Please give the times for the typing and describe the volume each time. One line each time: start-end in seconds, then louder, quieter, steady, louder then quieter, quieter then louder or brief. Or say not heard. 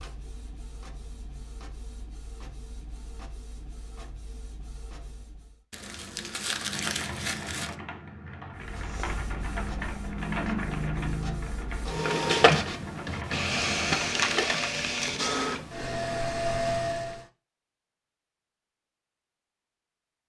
6.5-14.3 louder then quieter.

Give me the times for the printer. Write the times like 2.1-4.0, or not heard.
0.0-5.7, 8.6-17.2.